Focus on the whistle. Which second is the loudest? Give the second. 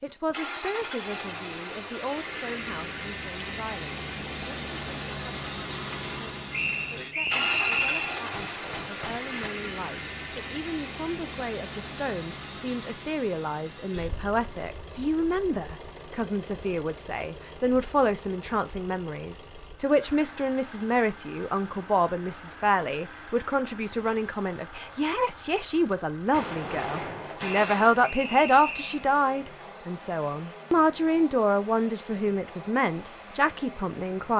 8 s.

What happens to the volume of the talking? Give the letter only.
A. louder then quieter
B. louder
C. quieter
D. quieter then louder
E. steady
B.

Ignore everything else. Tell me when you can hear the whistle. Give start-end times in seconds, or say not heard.
6.5-8.2, 27.4-29.1.